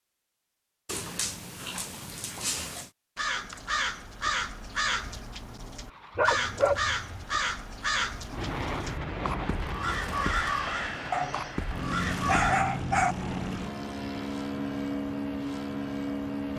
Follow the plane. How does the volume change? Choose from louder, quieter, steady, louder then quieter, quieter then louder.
louder.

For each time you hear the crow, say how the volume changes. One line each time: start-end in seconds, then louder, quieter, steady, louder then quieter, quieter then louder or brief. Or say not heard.
3.1-12.7 steady.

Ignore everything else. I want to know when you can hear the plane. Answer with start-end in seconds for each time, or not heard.
5.8-16.5.